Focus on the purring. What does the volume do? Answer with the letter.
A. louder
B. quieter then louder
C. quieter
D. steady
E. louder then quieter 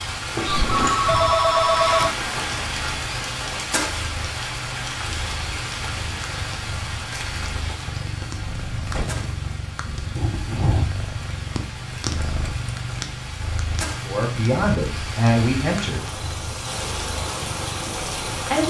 E.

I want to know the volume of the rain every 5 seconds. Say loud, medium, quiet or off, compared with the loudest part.
loud, medium, medium, loud.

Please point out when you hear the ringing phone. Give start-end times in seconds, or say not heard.
0.7-2.1.